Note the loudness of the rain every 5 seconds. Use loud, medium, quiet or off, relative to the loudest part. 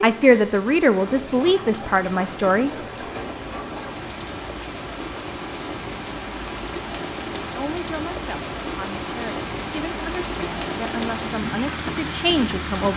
medium, loud, loud.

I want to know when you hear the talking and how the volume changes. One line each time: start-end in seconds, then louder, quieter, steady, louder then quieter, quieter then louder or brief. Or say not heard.
0.0-2.7 brief
7.5-12.9 louder.